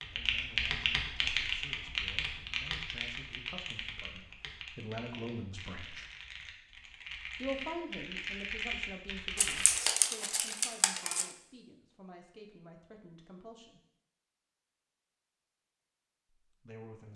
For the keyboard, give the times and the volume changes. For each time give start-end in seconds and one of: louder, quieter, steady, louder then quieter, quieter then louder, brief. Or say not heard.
0.0-9.8 quieter then louder.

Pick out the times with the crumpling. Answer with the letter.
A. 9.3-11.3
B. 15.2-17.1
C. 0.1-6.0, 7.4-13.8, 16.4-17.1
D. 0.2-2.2
A.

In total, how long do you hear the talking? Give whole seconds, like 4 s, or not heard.
13 s.